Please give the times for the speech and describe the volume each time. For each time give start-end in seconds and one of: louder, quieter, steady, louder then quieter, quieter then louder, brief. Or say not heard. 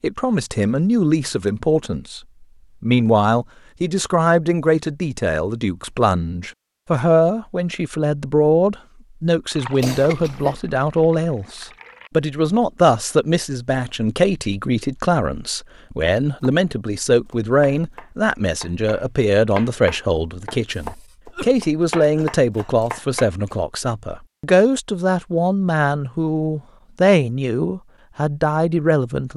0.0-2.2 brief
2.8-29.3 steady.